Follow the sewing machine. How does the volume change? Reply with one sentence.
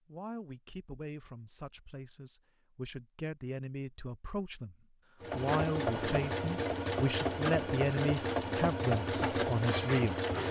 The loudness of the sewing machine stays about the same.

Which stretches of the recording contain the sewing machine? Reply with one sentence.
The sewing machine can be heard from 5.2 to 10.4 s.